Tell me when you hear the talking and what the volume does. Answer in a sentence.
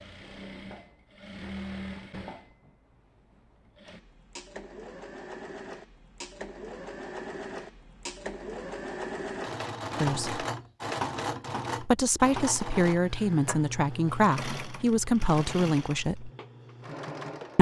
The talking can be heard briefly from 10.0 to 10.4 s; and from 11.8 to 16.3 s, at a steady volume.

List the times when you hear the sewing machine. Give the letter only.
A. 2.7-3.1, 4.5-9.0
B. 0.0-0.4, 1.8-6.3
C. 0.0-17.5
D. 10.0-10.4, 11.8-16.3
C.